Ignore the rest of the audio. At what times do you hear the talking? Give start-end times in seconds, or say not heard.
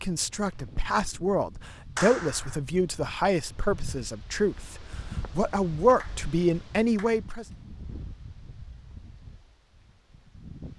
0.0-7.5.